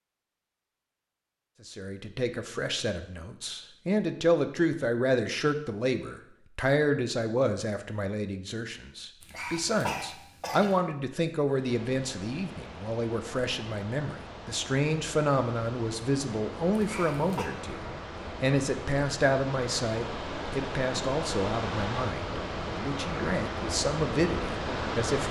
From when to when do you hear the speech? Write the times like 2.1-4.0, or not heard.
1.6-25.2.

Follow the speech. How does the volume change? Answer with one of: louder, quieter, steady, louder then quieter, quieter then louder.
steady.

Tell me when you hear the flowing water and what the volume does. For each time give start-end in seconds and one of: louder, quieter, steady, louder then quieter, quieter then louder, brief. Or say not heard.
11.4-25.2 louder.